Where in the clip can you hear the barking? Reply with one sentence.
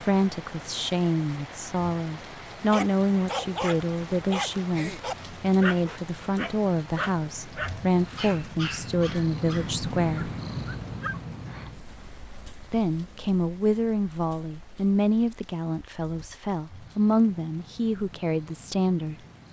You can hear the barking from 2.7 to 11.2 s.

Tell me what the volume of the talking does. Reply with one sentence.
The loudness of the talking stays about the same.